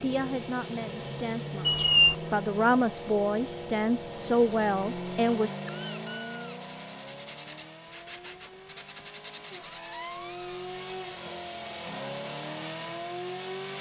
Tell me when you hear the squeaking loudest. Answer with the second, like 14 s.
2 s.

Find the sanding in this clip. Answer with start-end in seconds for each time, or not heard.
4.2-13.7.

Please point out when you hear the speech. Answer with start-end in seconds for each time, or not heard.
0.0-5.5.